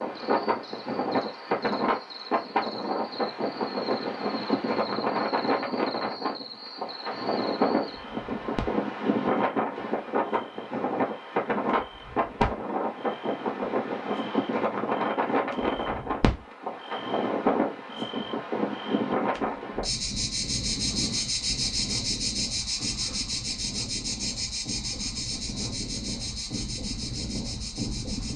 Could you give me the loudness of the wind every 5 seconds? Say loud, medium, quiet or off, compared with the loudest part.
loud, loud, loud, loud, medium, medium.